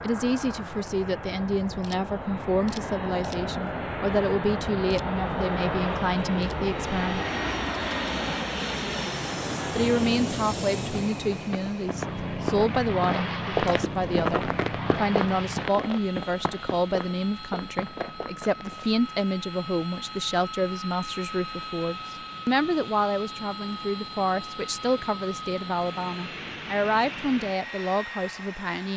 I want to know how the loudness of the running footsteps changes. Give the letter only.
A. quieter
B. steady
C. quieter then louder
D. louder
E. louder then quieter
E.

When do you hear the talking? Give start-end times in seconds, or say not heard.
0.0-7.2, 9.7-28.9.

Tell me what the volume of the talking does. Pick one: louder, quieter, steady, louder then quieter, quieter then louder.
steady.